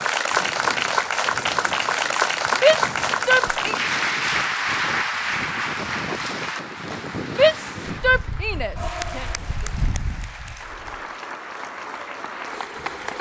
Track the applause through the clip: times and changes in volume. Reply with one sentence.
You can hear the applause from 0.0 to 13.1 s, getting quieter.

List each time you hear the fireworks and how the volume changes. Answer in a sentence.
You can't hear the fireworks here.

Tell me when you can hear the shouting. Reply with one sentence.
You can hear the shouting from 2.6 to 3.8 s and from 7.3 to 9.2 s.